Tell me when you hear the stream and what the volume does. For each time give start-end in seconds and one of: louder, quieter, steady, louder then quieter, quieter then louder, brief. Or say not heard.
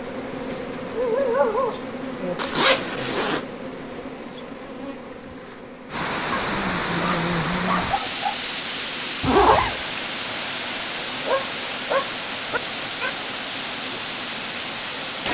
5.8-15.2 steady.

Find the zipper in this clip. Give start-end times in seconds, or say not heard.
2.4-3.5, 9.2-9.8.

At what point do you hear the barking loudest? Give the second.
1 s.